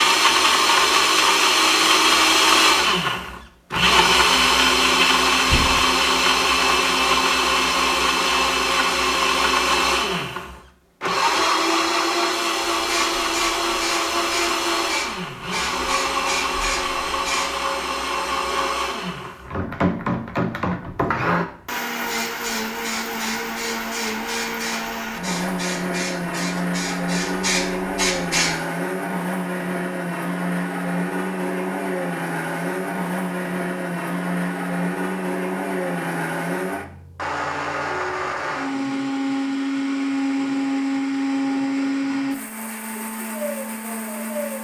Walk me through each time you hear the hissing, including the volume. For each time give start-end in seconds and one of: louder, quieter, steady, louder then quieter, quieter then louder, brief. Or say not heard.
12.8-17.5 steady
22.1-28.6 louder.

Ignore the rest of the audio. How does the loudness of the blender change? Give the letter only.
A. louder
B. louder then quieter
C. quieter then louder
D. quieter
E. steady
D.